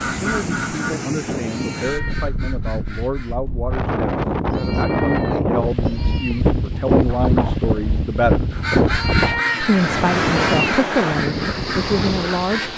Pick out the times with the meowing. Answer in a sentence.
You can hear the meowing from 1.4 to 2.3 s, from 4.5 to 6.5 s and from 8.8 to 10.8 s.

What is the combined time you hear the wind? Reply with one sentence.
The wind can be heard for 13 seconds in total.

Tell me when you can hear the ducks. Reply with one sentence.
You can hear the ducks from 0.0 to 3.4 s and from 8.5 to 12.7 s.